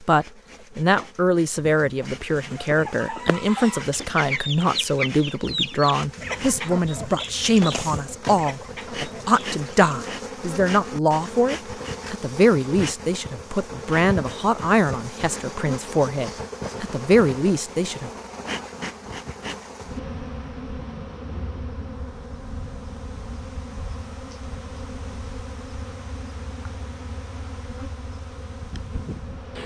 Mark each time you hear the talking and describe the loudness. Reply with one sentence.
The talking can be heard from 0.0 to 18.1 s, at a steady volume.